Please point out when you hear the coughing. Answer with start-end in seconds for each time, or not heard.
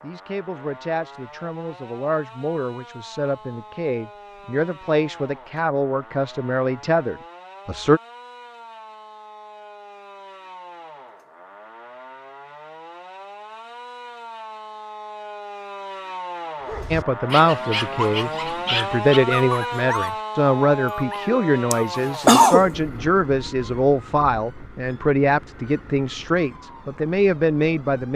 21.7-22.7.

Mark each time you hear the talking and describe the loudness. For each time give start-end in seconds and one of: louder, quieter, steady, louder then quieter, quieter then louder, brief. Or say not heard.
0.0-8.0 louder
16.9-28.1 steady.